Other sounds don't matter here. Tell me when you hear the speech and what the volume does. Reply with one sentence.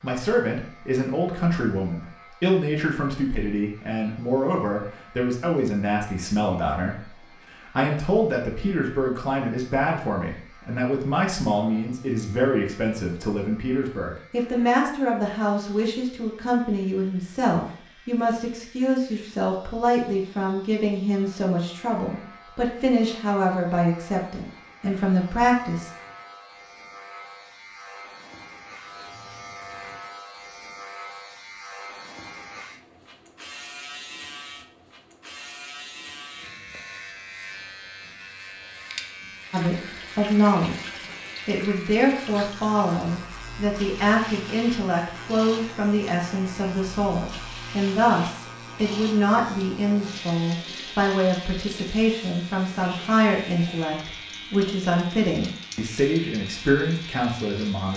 You can hear the speech from 0.0 to 25.9 s, at a steady volume; and from 39.5 to 57.9 s, at a steady volume.